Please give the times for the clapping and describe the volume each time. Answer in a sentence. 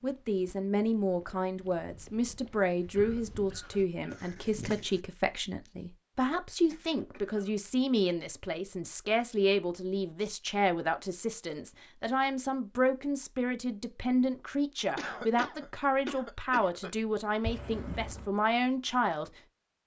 The clapping can't be heard in this clip.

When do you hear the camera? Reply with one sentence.
The camera can be heard from 17.4 to 18.3 s.